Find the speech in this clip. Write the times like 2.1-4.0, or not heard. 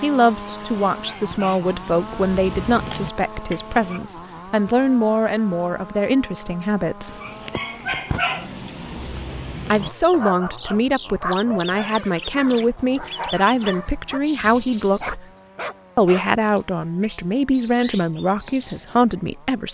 0.0-7.2, 9.7-15.2, 15.9-19.6.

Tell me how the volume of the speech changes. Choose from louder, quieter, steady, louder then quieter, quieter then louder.
steady.